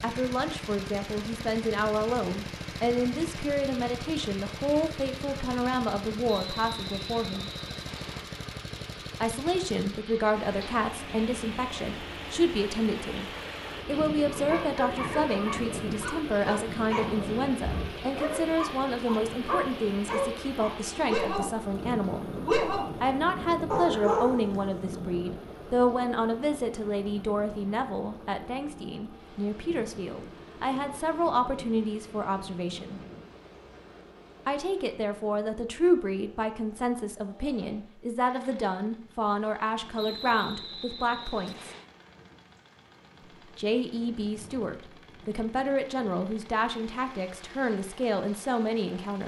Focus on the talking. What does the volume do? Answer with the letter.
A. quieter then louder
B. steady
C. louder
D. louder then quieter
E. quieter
B.